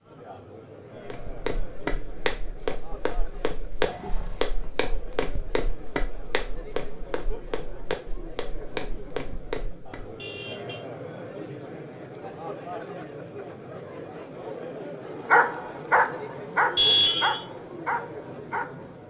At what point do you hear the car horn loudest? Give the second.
17 s.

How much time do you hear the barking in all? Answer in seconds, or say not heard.
4 s.